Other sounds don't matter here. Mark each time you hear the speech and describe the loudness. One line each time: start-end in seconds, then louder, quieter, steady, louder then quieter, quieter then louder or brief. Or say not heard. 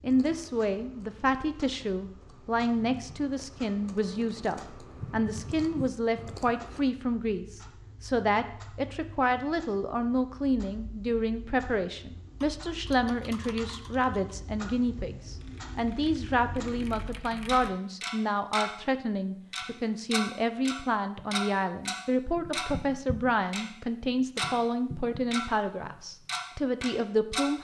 0.0-27.6 steady.